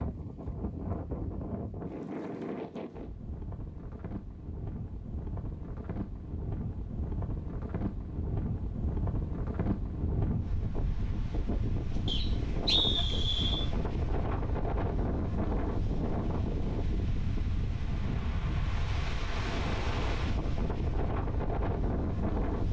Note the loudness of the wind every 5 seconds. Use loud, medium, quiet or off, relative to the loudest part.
medium, loud, loud, loud, loud.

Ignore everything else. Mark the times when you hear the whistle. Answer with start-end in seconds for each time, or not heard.
12.1-13.7.